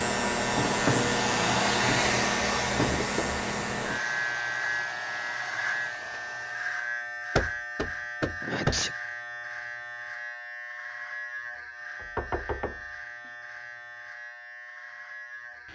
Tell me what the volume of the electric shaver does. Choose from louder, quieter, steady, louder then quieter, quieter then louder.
quieter.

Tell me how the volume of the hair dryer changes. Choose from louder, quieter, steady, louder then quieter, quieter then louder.
quieter.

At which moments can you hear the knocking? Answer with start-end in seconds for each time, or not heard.
2.8-3.4, 7.3-8.8, 11.9-13.3.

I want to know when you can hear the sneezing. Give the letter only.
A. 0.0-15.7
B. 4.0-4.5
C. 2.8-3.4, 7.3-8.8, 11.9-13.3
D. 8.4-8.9
D.